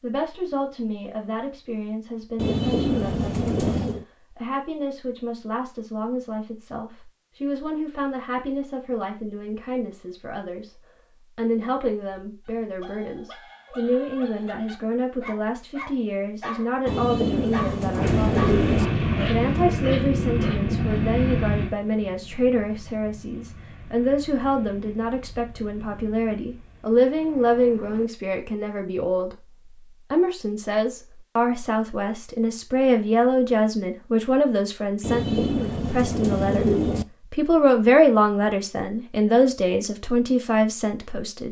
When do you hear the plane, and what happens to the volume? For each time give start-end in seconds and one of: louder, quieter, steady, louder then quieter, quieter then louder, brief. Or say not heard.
18.0-28.1 quieter.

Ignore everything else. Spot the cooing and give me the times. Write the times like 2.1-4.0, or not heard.
2.4-4.0, 16.9-18.9, 35.0-37.0.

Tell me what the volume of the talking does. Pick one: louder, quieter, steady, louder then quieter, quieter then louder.
louder.